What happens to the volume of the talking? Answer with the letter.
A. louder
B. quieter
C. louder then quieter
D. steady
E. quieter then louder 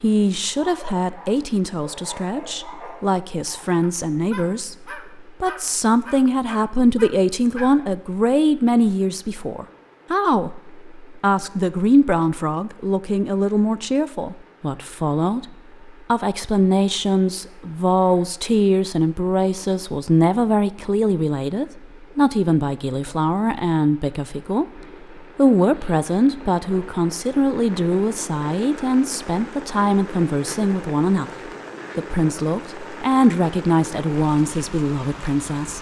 D.